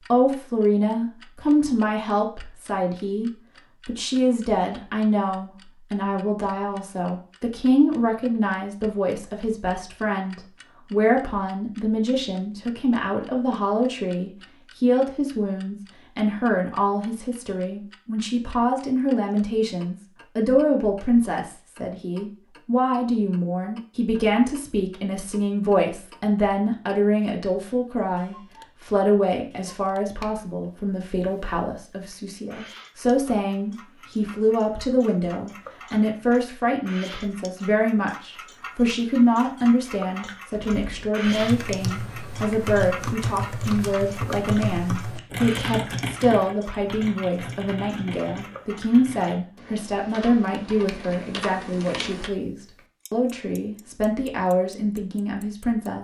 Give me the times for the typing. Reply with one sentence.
You can hear the typing from 40.5 to 52.3 s.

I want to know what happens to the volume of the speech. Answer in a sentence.
The volume of the speech stays about the same.